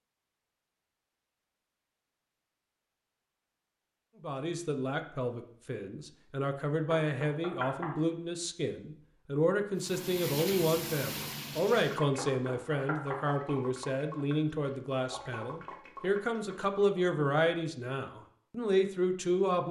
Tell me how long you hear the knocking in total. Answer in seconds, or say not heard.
2 s.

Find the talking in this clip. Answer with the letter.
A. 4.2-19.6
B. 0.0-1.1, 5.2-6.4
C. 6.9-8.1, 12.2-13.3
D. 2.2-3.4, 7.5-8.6
A.